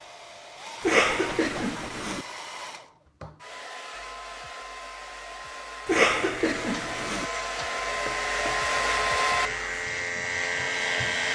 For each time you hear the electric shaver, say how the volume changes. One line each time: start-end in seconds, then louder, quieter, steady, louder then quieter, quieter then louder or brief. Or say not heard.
6.3-11.3 louder.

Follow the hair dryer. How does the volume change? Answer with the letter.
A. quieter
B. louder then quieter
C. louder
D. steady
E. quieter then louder
C.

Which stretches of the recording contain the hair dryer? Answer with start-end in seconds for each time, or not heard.
0.0-11.3.